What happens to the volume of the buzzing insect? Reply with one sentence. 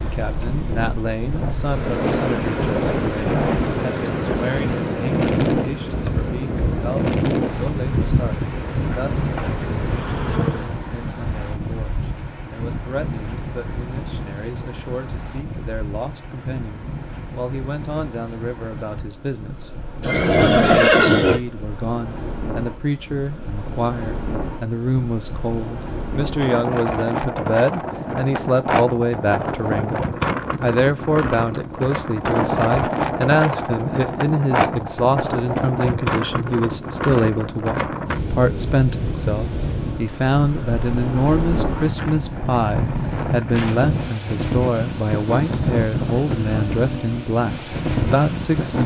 The loudness of the buzzing insect stays about the same.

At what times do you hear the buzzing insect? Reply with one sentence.
The buzzing insect can be heard from 1.5 to 10.8 s.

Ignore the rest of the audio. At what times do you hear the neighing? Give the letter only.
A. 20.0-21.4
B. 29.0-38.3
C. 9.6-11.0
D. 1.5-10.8
A.